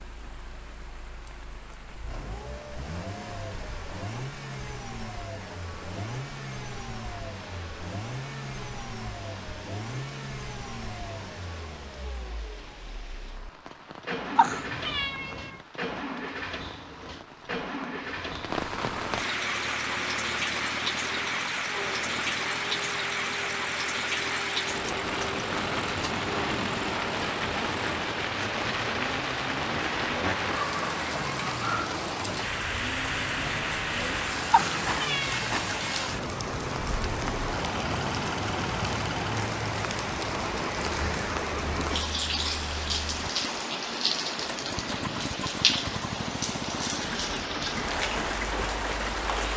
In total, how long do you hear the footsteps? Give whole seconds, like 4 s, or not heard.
not heard.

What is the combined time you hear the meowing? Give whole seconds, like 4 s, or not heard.
3 s.